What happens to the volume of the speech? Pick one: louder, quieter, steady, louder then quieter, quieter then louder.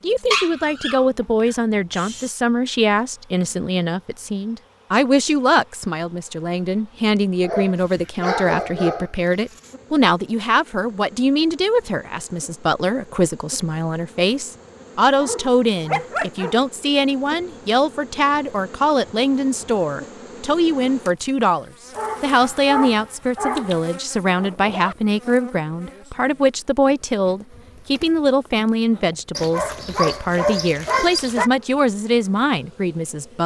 steady.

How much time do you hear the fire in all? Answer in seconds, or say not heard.
not heard.